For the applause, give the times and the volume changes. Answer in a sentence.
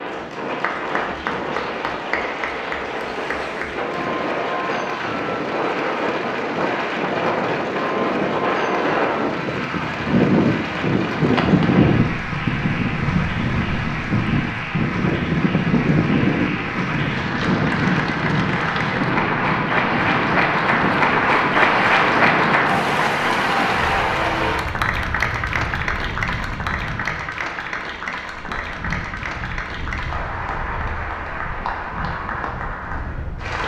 The applause can be heard from 0.0 to 33.6 s, getting louder then quieter.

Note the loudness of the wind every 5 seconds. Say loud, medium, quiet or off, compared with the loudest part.
medium, loud, loud, loud, medium, quiet, quiet.